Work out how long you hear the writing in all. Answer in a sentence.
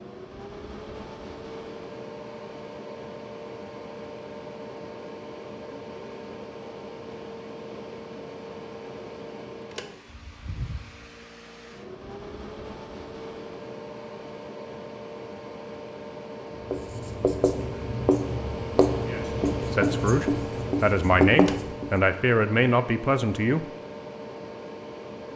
You can hear the writing for 5 seconds altogether.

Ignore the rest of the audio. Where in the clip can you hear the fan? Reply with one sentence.
The fan can be heard from 0.0 to 25.3 s.